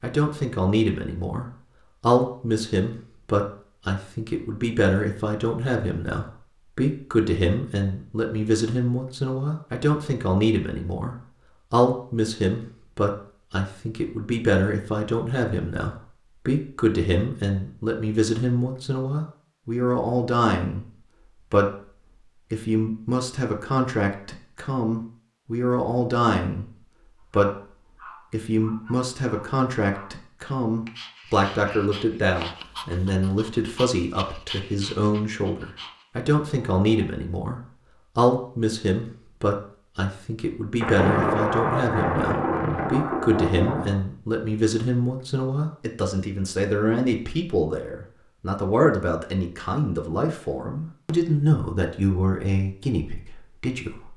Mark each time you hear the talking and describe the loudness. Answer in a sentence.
The talking can be heard from 0.0 to 54.1 s, at a steady volume.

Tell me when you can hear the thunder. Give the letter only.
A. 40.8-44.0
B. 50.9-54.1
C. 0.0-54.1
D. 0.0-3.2
A.